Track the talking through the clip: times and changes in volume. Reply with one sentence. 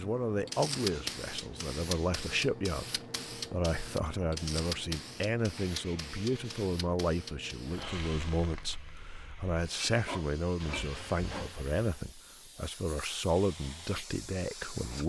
You can hear the talking from 0.0 to 15.0 s, at a steady volume.